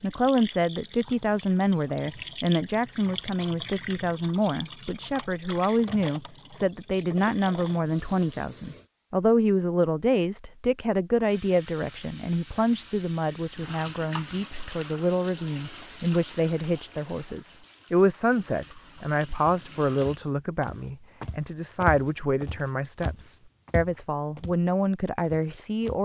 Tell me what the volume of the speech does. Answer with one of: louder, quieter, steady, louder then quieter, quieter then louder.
steady.